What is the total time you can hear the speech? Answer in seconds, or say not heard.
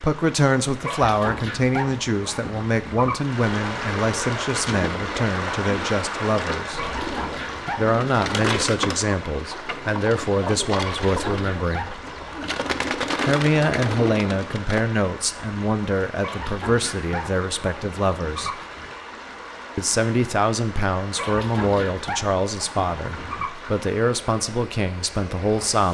22 s.